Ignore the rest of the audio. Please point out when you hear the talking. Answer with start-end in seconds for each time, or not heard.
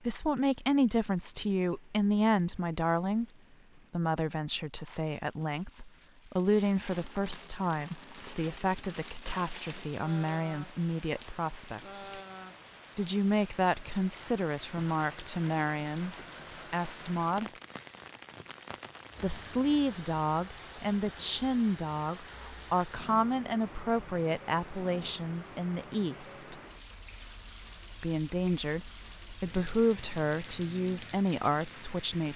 0.0-3.2, 3.9-12.2, 12.9-17.5, 19.2-26.6, 28.0-32.3.